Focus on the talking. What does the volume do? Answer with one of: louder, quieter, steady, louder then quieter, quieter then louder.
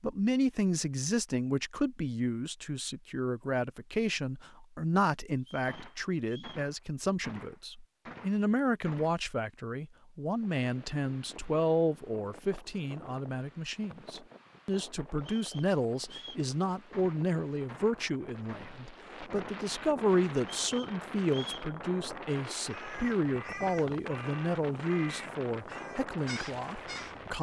steady.